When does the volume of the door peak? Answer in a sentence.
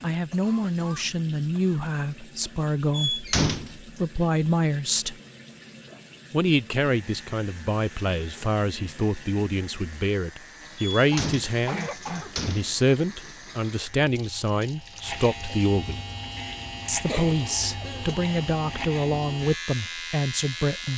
The loudest moment of the door is at 3 seconds.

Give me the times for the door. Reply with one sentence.
You can hear the door from 2.9 to 3.8 s and from 10.8 to 12.8 s.